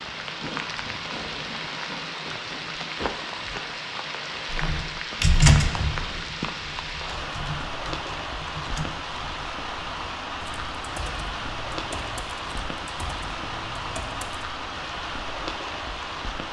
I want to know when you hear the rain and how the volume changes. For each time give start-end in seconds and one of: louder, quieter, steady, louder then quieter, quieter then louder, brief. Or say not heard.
0.0-16.4 steady.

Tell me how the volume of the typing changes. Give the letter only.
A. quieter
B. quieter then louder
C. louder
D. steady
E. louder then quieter
A.